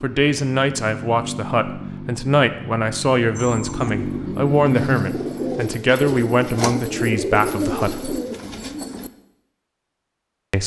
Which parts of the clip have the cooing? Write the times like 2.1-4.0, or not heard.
3.4-9.1.